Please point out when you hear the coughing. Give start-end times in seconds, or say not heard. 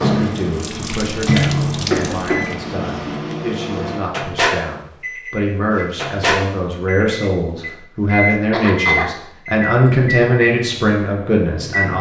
1.9-2.5, 8.5-9.1.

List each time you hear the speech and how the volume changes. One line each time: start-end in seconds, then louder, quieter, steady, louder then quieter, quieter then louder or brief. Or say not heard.
0.0-11.9 louder.